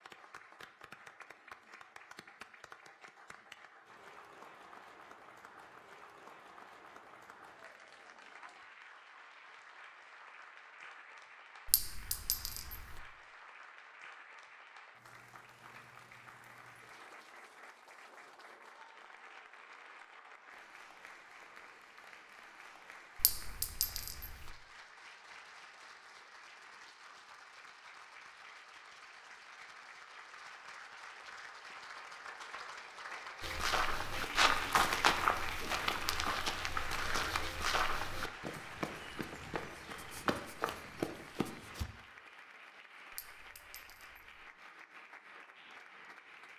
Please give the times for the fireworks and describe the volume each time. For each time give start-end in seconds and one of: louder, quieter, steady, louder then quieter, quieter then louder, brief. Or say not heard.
not heard.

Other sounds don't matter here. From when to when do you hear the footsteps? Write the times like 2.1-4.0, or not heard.
33.4-41.9.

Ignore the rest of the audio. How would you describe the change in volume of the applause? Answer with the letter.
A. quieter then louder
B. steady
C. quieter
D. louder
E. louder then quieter
E.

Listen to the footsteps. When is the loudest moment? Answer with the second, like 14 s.
35 s.